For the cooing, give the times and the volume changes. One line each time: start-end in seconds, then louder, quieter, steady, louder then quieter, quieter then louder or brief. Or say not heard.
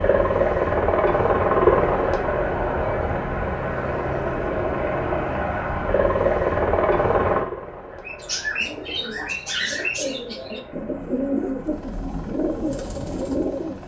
8.0-13.8 steady.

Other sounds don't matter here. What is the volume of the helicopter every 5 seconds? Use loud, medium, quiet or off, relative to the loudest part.
loud, loud, quiet.